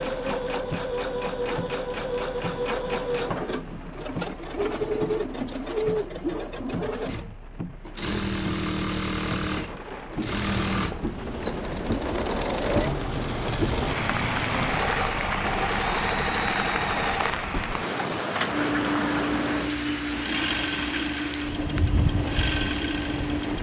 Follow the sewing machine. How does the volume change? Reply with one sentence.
The loudness of the sewing machine stays about the same.